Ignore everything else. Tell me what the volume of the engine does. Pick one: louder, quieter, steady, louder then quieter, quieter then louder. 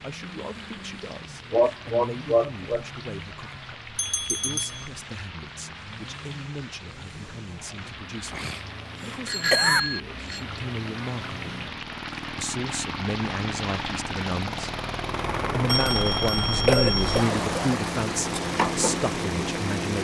louder.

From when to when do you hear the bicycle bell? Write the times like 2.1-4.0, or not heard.
4.0-4.9, 9.2-10.4, 15.7-17.2.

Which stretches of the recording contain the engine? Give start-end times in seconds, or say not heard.
0.0-19.9.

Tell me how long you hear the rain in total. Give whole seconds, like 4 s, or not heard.
20 s.